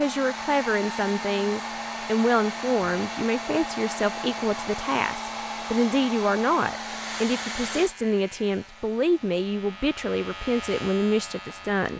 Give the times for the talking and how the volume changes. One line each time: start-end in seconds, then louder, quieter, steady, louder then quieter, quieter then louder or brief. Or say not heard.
0.0-11.9 steady.